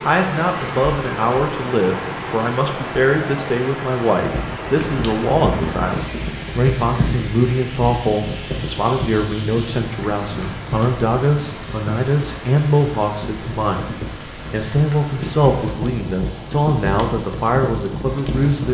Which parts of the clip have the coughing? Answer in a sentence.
You can't hear the coughing here.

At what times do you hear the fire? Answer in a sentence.
You can hear the fire from 4.2 to 18.6 s.